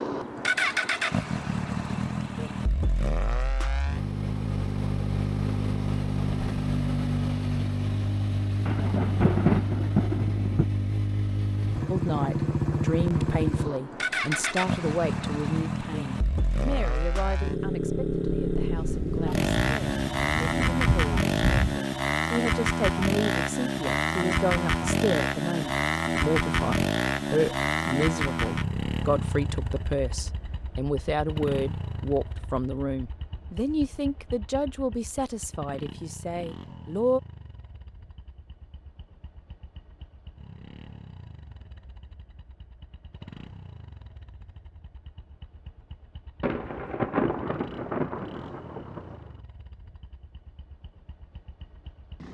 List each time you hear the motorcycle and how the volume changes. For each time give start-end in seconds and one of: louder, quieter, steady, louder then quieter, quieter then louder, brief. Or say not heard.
0.0-52.3 quieter.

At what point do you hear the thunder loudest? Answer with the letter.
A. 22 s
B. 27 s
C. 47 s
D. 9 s
D.